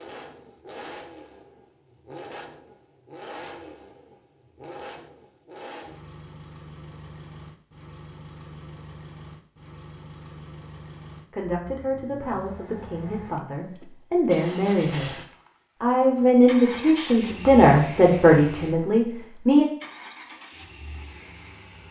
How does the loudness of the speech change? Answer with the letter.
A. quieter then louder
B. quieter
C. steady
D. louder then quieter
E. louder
E.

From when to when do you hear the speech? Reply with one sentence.
The speech can be heard from 11.3 to 15.2 s and from 15.8 to 19.6 s.